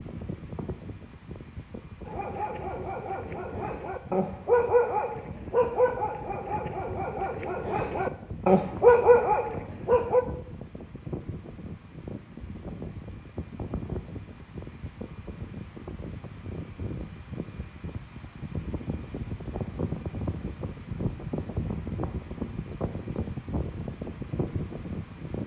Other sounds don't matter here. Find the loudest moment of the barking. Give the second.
9 s.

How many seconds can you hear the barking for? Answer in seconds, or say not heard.
8 s.